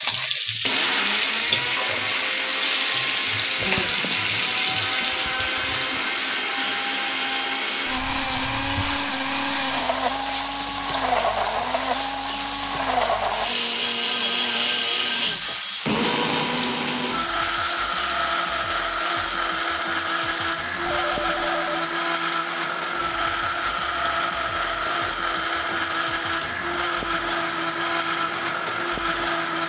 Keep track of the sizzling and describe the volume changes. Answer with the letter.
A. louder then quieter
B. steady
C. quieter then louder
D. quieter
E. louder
D.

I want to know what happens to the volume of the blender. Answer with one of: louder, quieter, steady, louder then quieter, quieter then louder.
steady.